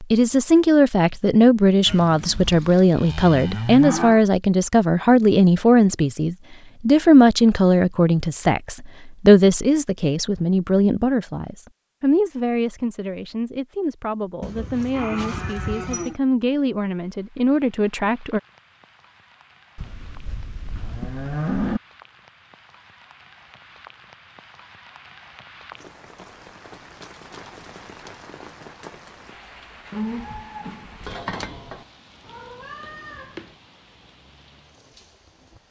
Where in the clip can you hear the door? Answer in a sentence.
The door can't be heard in this clip.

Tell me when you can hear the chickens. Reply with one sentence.
You can't hear the chickens here.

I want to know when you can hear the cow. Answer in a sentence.
You can hear the cow from 1.9 to 4.2 s, from 14.4 to 16.1 s, from 19.8 to 21.8 s and from 29.9 to 31.9 s.